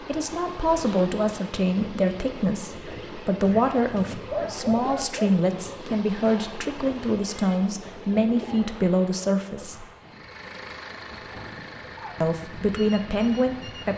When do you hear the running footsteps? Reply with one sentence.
You can't hear the running footsteps here.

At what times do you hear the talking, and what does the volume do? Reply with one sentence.
The talking can be heard from 0.0 to 9.8 s, at a steady volume; and briefly from 12.2 to 13.9 s.